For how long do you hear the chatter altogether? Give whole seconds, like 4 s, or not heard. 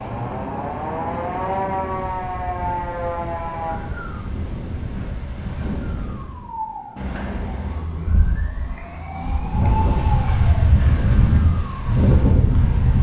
not heard.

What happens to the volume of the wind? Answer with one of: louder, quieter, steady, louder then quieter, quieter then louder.
louder.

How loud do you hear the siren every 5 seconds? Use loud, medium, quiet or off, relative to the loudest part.
loud, medium, medium.